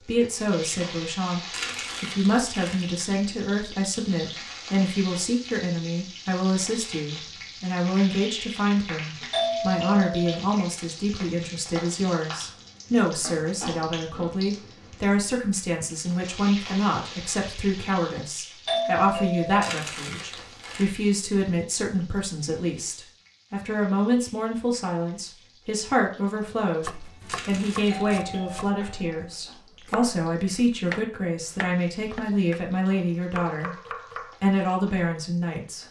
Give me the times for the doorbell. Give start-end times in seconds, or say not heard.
9.3-10.4, 18.6-19.8, 27.9-29.1.